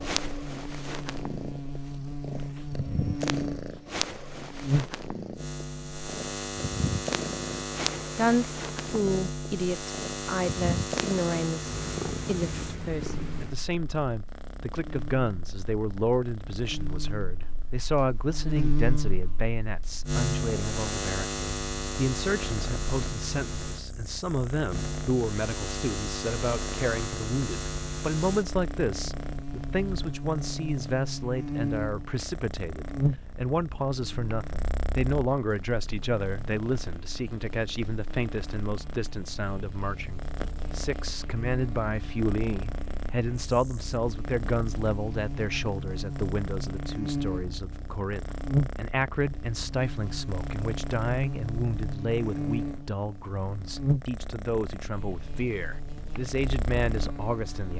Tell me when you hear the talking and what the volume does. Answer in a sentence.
You can hear the talking from 8.2 to 57.7 s, at a steady volume.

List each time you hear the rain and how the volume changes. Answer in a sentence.
You can't hear the rain here.